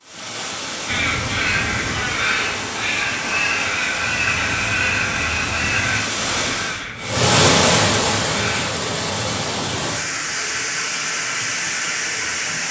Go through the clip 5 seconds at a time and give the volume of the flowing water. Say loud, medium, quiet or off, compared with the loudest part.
medium, loud, loud.